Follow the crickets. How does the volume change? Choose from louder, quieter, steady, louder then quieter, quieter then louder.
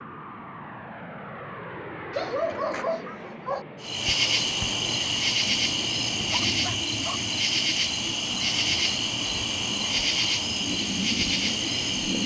steady.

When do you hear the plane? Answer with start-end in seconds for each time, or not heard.
0.0-6.4.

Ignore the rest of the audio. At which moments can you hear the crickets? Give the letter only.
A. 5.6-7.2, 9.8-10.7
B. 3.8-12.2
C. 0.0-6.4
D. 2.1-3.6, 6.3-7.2
B.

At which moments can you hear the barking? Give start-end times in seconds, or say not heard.
2.1-3.6, 6.3-7.2.